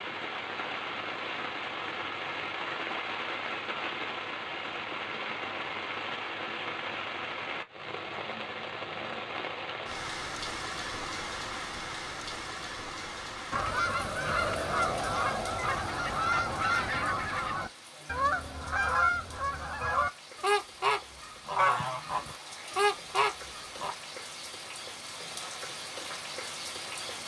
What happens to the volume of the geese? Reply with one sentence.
The volume of the geese stays about the same.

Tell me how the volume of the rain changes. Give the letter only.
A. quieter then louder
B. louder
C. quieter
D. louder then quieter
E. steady
A.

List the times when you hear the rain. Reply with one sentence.
The rain can be heard from 0.0 to 27.2 s.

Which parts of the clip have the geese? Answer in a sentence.
The geese can be heard from 13.5 to 23.9 s.